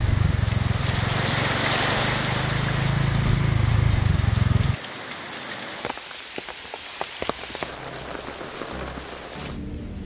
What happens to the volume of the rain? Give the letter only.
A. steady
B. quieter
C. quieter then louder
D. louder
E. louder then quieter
B.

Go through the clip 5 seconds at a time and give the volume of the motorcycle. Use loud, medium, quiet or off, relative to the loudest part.
loud, off.